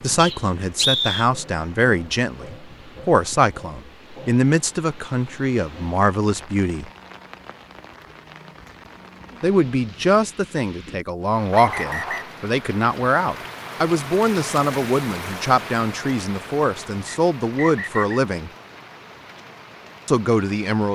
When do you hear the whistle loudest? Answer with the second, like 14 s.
1 s.